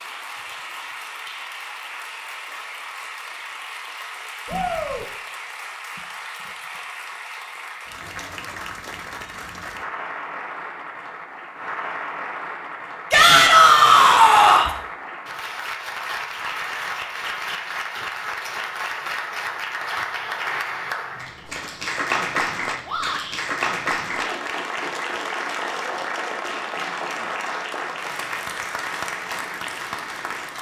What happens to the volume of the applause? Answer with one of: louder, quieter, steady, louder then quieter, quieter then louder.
louder.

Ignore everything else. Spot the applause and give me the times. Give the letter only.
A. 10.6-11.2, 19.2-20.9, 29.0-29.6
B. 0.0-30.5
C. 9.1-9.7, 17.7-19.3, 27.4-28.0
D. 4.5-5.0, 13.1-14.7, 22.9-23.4
B.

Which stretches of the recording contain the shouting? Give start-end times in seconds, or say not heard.
4.5-5.0, 13.1-14.7, 22.9-23.4.